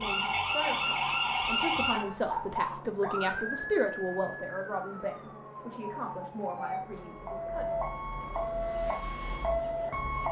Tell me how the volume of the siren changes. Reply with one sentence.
The volume of the siren goes down, then up.